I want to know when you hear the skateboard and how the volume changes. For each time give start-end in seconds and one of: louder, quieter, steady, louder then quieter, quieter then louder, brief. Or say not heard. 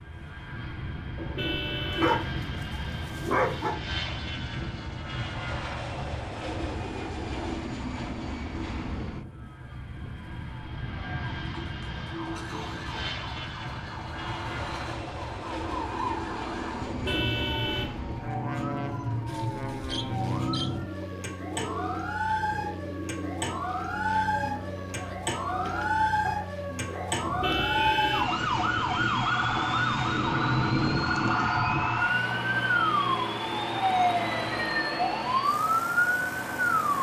not heard.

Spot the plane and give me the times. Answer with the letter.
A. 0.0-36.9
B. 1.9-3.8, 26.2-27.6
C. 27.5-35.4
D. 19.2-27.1
A.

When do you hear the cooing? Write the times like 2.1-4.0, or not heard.
19.2-27.1.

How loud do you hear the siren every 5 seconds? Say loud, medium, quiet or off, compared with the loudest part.
quiet, quiet, quiet, medium, medium, loud, loud, loud.